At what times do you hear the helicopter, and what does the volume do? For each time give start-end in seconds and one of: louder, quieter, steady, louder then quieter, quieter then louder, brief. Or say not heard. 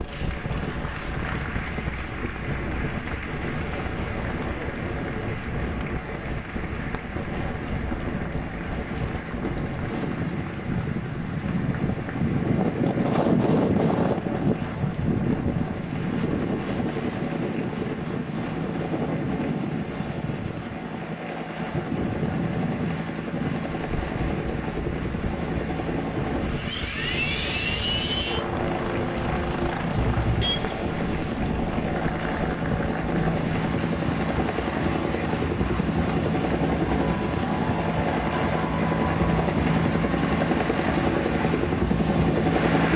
0.0-42.9 louder.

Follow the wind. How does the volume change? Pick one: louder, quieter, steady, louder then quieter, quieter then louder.
louder then quieter.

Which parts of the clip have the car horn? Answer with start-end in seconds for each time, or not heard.
29.9-30.8.